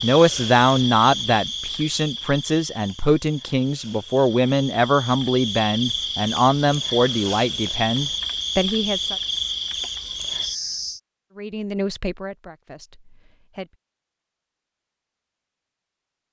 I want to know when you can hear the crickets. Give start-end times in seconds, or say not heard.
0.0-11.0.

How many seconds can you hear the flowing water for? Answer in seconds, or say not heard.
not heard.